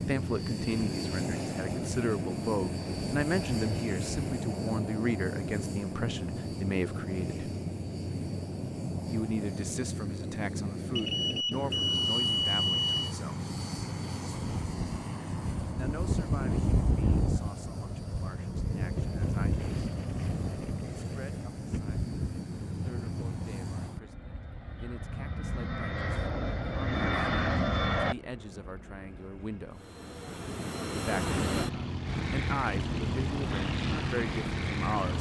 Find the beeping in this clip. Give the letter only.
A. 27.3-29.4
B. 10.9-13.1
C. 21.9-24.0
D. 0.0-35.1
B.